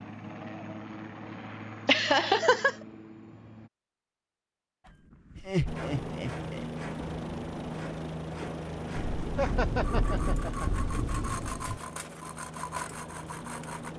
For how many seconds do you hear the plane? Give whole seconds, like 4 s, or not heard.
12 s.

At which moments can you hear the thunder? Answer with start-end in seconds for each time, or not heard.
8.9-11.8.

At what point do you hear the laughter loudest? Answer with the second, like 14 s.
2 s.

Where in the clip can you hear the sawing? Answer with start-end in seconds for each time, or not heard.
4.8-13.9.